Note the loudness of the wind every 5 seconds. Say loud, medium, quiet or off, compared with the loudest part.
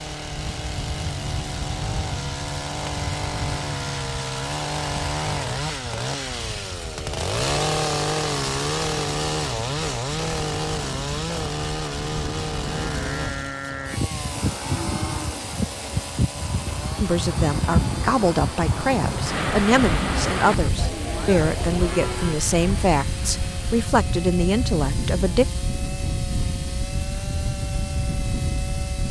medium, quiet, medium, loud, loud, loud.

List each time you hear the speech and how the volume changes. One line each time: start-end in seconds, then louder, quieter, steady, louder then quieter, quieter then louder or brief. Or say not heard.
17.0-25.4 steady.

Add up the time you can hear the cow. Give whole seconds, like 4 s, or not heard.
10 s.